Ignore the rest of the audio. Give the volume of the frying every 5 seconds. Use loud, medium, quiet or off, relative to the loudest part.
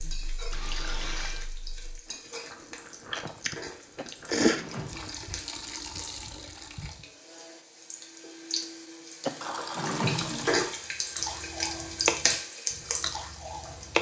quiet, medium, loud.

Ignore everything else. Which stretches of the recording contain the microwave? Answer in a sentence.
The microwave can't be heard in this clip.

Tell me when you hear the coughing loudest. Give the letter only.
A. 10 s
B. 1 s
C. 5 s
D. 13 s
A.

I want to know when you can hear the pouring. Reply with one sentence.
You can hear the pouring from 0.5 to 1.5 s, from 4.8 to 7.0 s and from 9.4 to 10.8 s.